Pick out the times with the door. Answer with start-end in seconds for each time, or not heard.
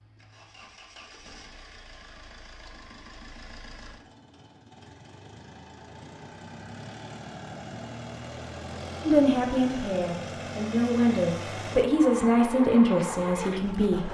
not heard.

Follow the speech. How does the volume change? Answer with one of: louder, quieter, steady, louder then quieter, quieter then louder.
louder then quieter.